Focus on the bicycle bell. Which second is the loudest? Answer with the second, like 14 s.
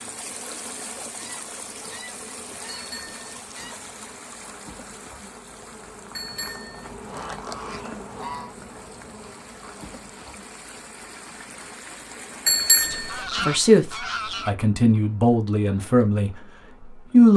13 s.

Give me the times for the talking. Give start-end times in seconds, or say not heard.
12.9-17.3.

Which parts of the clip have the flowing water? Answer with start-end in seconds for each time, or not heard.
0.0-13.2.